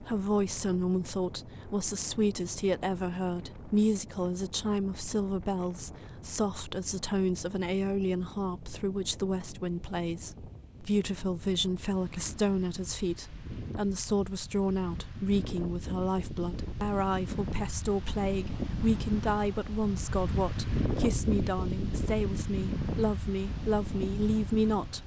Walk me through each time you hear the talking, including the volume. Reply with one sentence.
The talking can be heard from 0.0 to 25.0 s, at a steady volume.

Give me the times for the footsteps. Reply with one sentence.
You can't hear the footsteps here.